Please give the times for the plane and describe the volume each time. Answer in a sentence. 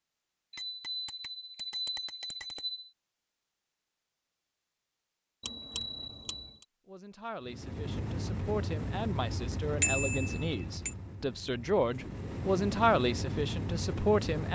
The plane can be heard from 7.4 to 14.5 s, getting quieter then louder.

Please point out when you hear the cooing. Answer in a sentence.
The cooing can't be heard in this clip.